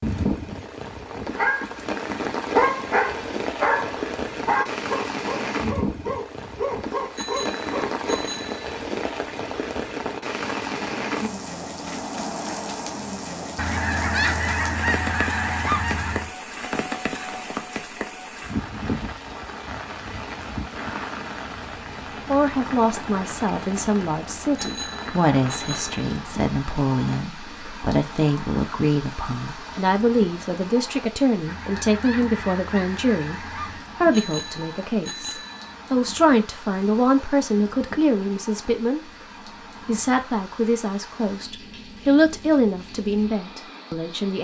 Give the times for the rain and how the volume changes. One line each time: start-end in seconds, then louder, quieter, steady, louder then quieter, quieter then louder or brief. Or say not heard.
0.0-44.3 quieter.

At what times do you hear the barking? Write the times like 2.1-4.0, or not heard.
1.3-8.0.